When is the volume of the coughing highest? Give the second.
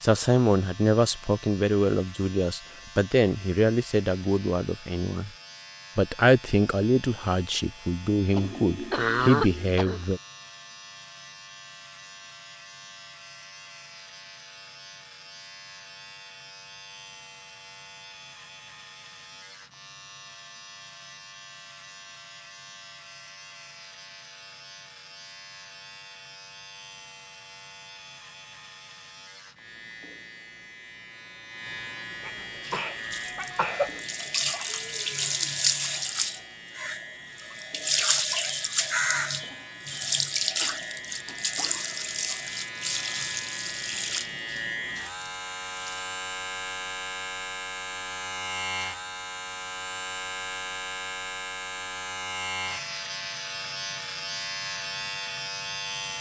9 s.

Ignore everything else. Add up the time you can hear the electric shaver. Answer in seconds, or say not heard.
56 s.